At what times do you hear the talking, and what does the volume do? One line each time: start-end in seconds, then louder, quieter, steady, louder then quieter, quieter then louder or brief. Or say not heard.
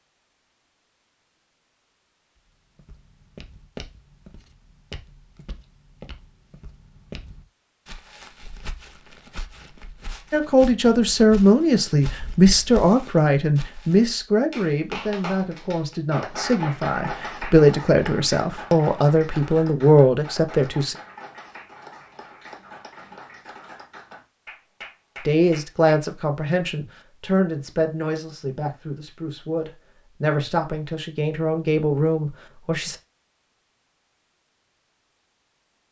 10.3-20.9 quieter then louder
25.2-33.0 quieter then louder.